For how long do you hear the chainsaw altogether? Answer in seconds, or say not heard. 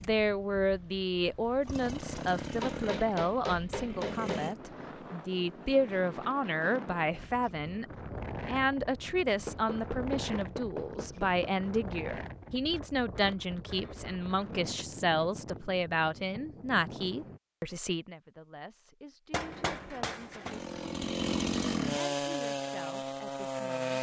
8 s.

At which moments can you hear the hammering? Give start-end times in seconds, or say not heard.
2.6-4.5, 9.4-11.7, 19.3-20.6.